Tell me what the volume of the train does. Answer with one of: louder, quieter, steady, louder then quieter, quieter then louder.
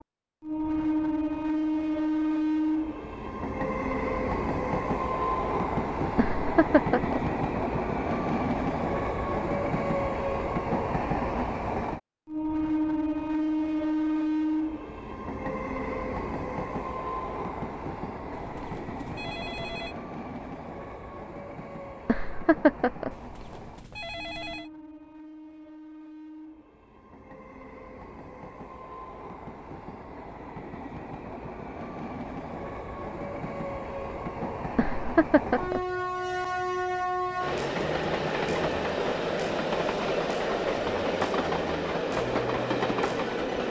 quieter then louder.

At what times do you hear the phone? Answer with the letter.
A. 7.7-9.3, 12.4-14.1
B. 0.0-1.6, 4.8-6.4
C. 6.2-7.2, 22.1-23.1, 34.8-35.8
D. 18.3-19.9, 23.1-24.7
D.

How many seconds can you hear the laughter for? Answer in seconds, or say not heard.
3 s.